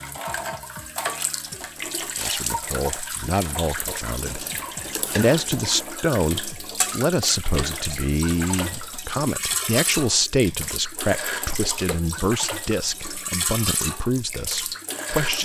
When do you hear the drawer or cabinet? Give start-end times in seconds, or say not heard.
not heard.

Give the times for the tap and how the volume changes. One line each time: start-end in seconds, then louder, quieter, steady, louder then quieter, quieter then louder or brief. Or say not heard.
0.0-15.4 steady.